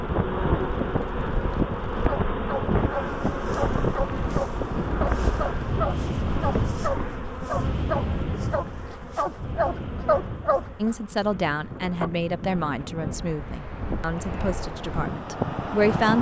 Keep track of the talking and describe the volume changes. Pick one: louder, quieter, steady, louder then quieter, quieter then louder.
quieter.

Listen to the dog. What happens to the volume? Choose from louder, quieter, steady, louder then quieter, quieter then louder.
louder.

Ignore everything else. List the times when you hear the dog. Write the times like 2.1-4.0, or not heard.
2.0-10.9.